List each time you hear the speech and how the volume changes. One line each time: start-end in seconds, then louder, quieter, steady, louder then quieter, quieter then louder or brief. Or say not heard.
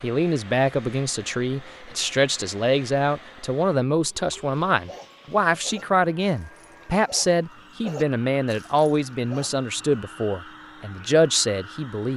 0.0-12.1 steady.